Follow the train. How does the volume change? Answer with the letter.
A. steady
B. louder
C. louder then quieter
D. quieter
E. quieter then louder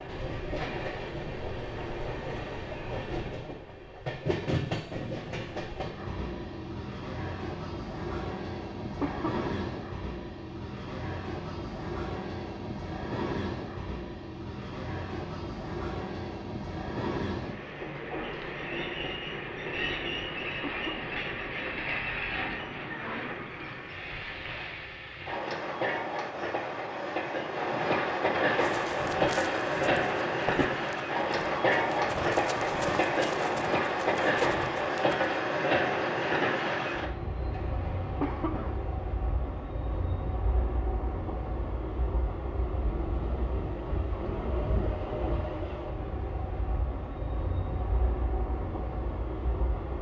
C.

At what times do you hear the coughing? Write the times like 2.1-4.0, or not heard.
9.0-9.5, 20.6-21.1, 38.2-38.8.